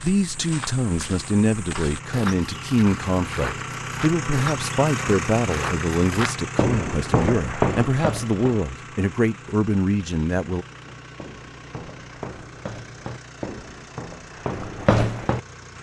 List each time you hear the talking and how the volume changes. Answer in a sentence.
You can hear the talking from 0.0 to 10.7 s, at a steady volume.